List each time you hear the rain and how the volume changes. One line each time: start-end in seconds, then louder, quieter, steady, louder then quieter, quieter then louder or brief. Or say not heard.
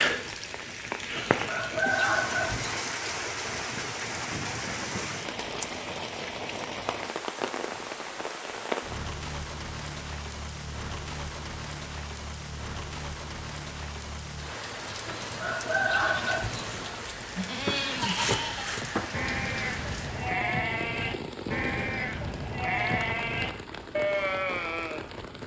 0.0-25.4 quieter.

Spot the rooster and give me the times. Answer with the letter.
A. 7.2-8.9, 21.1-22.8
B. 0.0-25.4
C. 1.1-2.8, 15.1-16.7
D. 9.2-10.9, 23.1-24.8
C.